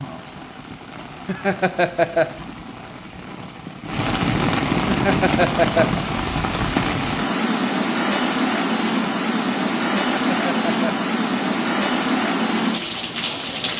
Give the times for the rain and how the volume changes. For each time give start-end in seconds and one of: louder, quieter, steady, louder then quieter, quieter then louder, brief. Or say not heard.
0.0-13.7 louder.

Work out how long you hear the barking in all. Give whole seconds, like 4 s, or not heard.
not heard.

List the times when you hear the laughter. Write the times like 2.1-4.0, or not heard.
1.2-2.5, 4.8-6.0, 10.1-11.1.